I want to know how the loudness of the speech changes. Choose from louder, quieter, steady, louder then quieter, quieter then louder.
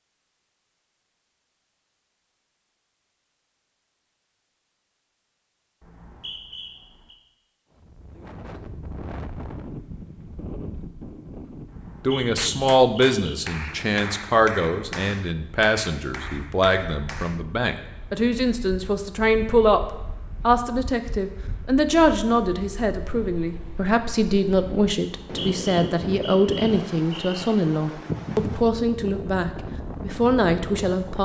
steady.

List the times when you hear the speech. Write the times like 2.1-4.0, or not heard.
12.1-31.2.